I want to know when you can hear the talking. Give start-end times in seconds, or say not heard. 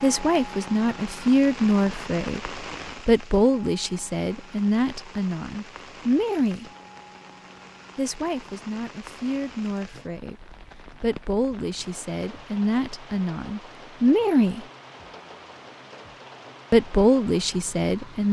0.0-6.7, 8.0-14.7, 16.7-18.2.